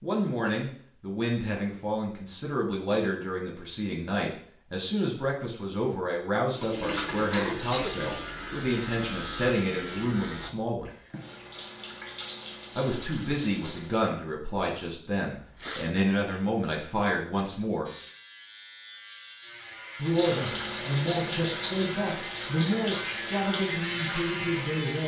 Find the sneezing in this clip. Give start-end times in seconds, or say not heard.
7.3-8.0, 15.3-16.0.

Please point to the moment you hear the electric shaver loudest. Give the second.
24 s.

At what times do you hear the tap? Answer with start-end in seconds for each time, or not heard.
6.5-14.0, 20.0-24.9.